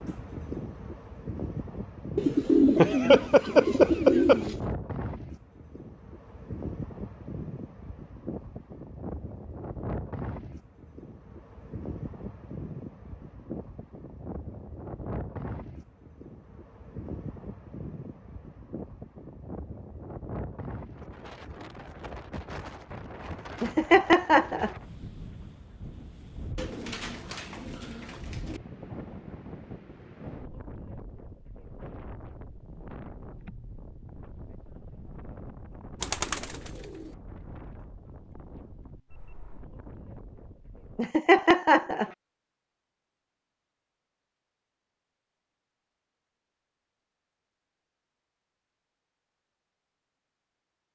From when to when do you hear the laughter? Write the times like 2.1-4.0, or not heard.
2.8-4.4, 23.6-24.7, 41.0-42.1.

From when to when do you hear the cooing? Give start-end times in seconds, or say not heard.
2.1-4.6, 26.6-28.6, 36.0-37.1.